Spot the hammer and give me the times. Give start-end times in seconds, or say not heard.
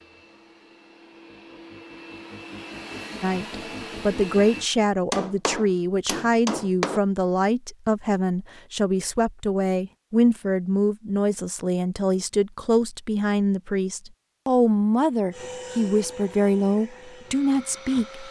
5.1-7.0.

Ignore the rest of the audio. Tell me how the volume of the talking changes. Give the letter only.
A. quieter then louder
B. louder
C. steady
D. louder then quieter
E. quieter
C.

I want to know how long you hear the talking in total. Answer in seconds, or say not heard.
15 s.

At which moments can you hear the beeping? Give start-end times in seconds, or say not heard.
not heard.